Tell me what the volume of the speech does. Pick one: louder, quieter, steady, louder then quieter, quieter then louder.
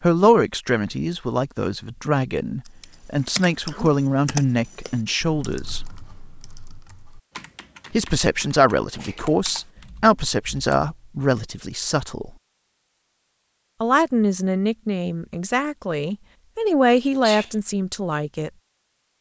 steady.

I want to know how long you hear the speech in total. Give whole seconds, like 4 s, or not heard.
15 s.